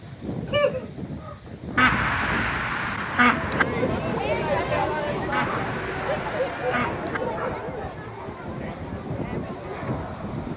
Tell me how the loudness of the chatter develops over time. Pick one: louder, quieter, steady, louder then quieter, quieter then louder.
quieter.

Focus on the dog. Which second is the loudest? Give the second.
1 s.